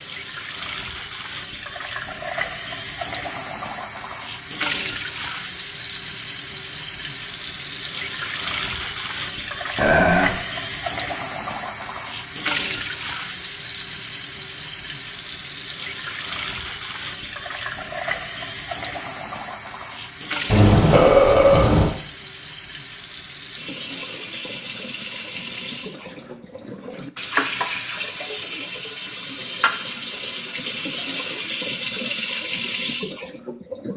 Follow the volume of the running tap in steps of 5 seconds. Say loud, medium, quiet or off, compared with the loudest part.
loud, loud, loud, loud, medium, loud, loud.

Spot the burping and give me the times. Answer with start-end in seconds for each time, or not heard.
9.8-10.3, 20.5-21.9.